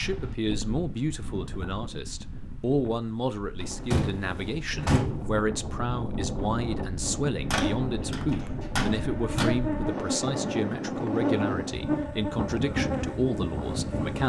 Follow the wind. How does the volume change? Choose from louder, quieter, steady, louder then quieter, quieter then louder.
louder.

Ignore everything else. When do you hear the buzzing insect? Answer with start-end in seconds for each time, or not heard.
7.0-14.2.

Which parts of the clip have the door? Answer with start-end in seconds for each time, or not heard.
3.6-5.3, 7.5-9.5.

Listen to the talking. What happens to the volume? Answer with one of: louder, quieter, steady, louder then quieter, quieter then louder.
steady.